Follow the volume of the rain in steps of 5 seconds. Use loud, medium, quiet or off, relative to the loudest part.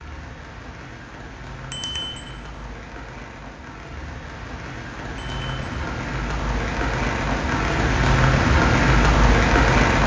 quiet, loud.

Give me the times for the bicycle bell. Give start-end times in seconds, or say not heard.
1.7-2.3, 5.2-5.8.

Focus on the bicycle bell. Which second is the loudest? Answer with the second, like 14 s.
2 s.